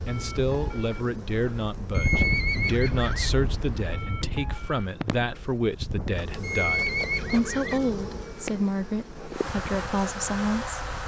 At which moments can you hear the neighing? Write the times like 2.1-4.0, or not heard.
1.9-3.3, 6.4-7.8.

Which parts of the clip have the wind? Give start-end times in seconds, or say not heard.
0.0-11.0.